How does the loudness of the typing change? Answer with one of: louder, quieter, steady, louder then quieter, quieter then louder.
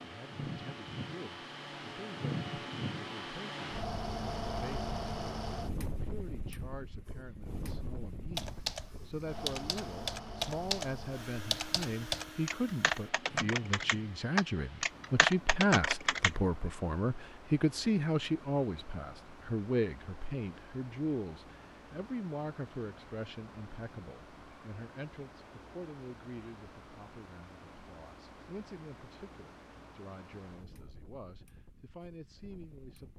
louder.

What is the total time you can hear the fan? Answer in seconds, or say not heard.
33 s.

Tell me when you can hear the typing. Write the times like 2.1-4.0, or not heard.
8.3-16.3.